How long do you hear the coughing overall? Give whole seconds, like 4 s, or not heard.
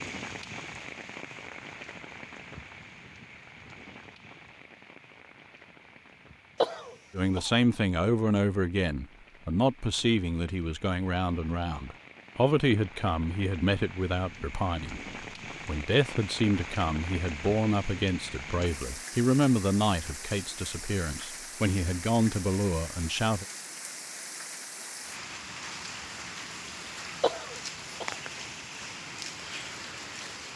2 s.